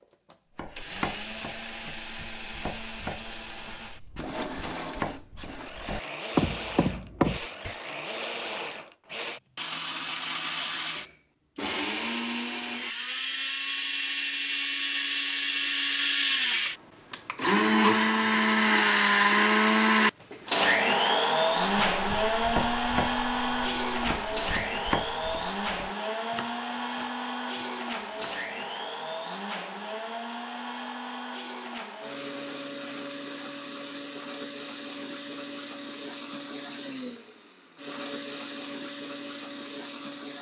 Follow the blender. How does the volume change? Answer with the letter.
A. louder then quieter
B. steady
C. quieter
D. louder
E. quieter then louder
A.